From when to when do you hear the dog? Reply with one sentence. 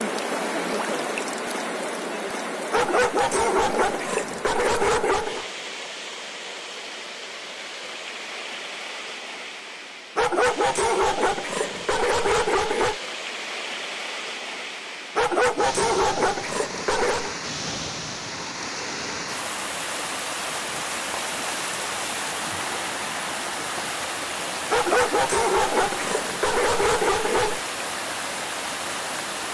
The dog can be heard from 2.7 to 5.5 s, from 10.2 to 12.9 s, from 15.2 to 17.4 s and from 24.7 to 27.6 s.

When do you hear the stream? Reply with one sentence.
You can hear the stream from 0.0 to 29.4 s.